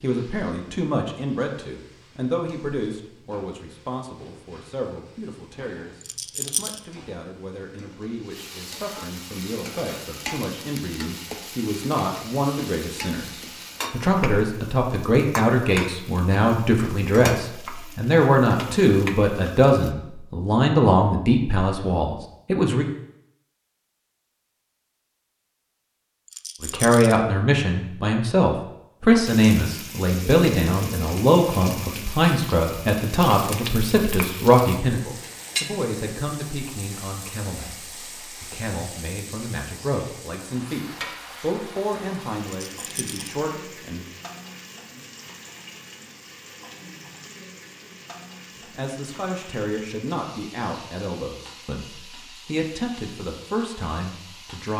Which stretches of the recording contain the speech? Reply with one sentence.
The speech can be heard from 0.0 to 22.9 s, from 26.6 to 44.0 s and from 48.8 to 54.7 s.